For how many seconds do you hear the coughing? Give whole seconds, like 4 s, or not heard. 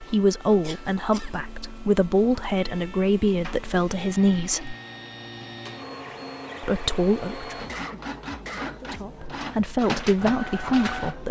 2 s.